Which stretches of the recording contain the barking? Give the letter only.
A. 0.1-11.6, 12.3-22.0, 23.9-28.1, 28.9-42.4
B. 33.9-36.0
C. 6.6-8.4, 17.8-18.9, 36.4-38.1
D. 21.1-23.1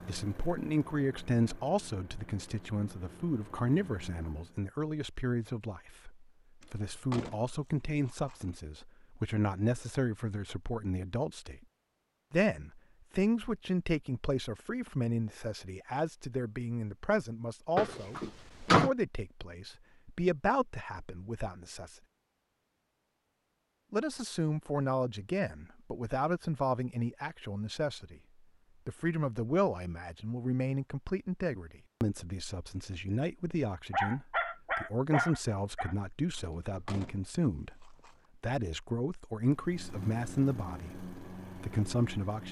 B.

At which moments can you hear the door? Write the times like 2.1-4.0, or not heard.
6.6-8.4, 17.8-18.9, 36.4-38.1.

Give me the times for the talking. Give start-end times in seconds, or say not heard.
0.1-11.6, 12.3-22.0, 23.9-28.1, 28.9-42.4.